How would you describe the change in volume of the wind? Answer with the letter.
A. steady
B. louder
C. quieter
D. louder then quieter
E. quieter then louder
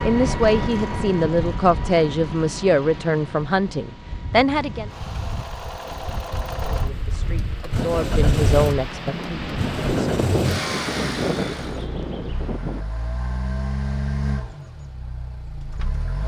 B.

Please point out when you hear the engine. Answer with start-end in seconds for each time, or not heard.
0.0-16.2.